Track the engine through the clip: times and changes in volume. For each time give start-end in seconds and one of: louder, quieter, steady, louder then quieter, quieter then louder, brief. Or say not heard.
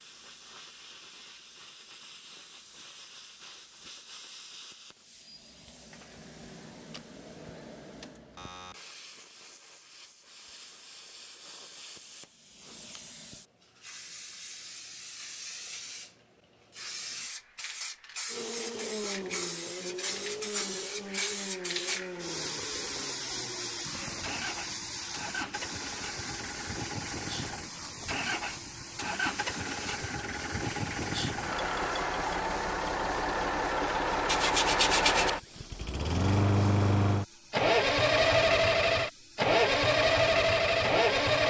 18.3-41.4 louder.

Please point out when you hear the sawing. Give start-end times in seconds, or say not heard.
34.2-35.3.